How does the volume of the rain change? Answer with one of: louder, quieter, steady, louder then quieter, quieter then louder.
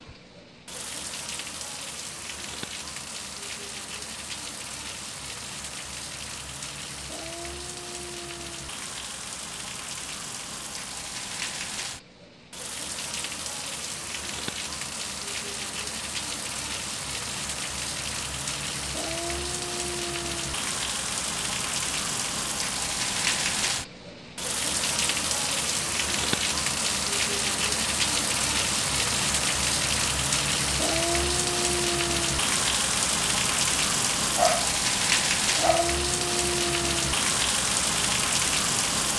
louder.